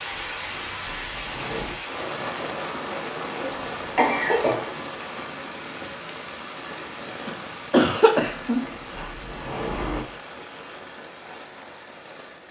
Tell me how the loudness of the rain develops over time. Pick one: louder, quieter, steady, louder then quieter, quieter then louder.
quieter.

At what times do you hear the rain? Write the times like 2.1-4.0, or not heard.
0.0-12.4.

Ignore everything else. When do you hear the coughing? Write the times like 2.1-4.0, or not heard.
3.4-4.6, 7.2-8.6.